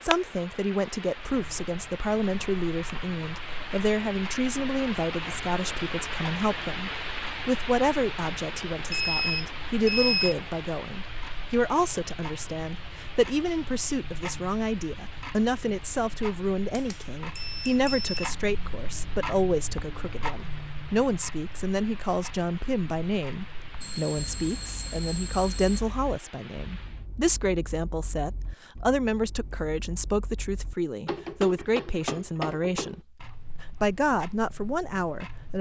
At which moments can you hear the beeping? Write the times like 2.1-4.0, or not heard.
8.9-10.3, 16.7-18.3, 23.8-25.8.